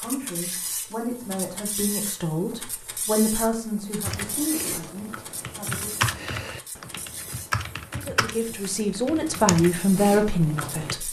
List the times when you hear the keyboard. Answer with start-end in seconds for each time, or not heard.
4.0-10.9.